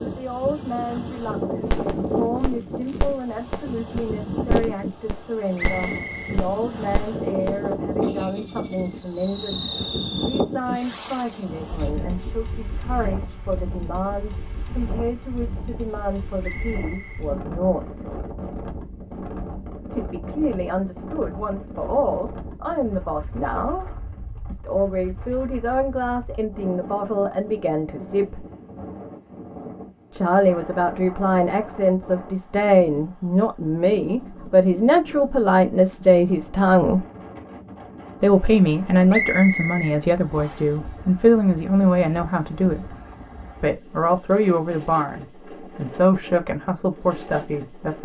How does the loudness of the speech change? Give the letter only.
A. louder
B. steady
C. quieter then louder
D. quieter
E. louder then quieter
A.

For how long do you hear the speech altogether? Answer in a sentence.
The speech can be heard for 42 seconds in total.